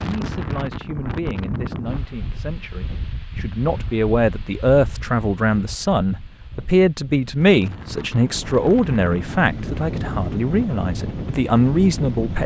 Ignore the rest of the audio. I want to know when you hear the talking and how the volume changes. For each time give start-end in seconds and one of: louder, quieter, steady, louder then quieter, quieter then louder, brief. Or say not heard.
0.0-12.4 louder.